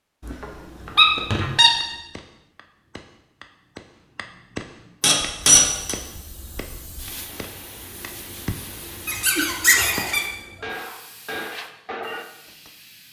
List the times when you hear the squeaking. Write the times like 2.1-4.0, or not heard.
0.2-1.7, 5.0-6.0, 9.1-10.2.